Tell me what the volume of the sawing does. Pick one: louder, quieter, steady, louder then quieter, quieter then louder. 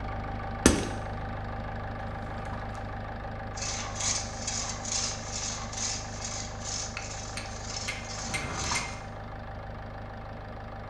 quieter.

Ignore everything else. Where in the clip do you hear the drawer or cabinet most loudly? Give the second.
9 s.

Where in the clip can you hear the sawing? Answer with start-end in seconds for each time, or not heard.
3.5-8.9.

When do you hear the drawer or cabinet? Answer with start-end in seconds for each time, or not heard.
2.1-2.9, 8.2-9.0.